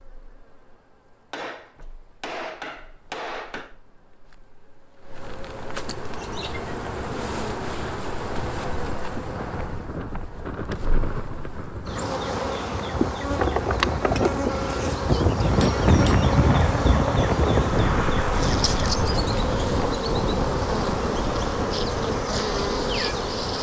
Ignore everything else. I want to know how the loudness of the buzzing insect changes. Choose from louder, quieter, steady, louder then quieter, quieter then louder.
louder.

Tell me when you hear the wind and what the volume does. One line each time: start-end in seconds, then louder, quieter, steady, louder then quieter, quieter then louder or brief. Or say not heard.
8.3-23.5 louder then quieter.